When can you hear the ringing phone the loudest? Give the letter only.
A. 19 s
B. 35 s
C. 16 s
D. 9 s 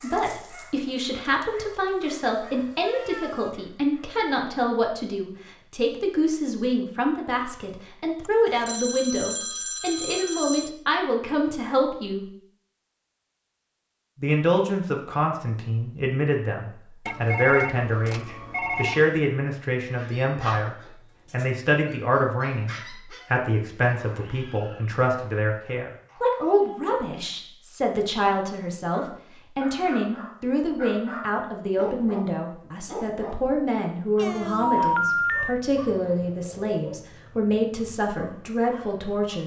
B.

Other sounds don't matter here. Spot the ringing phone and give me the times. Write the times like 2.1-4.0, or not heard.
8.2-10.7, 17.1-19.1, 34.6-35.5.